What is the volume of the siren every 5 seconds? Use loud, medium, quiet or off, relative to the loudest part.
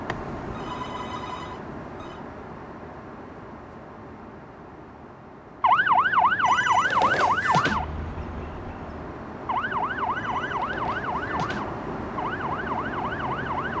off, loud, medium.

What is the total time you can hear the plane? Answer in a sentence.
The plane can be heard for 14 seconds in total.